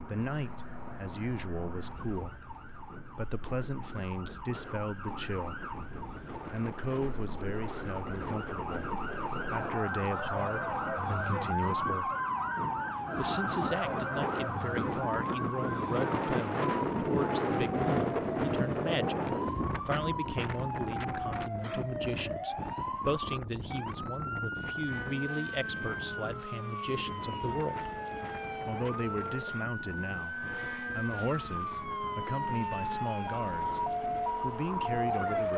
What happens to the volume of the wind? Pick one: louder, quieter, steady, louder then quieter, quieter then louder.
louder then quieter.